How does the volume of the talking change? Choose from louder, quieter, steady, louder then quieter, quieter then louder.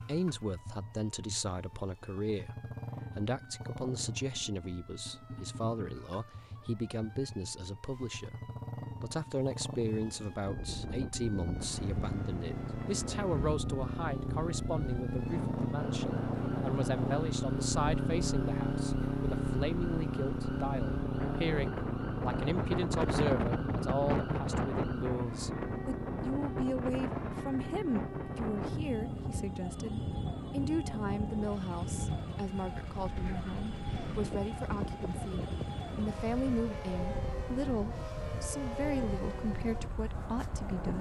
steady.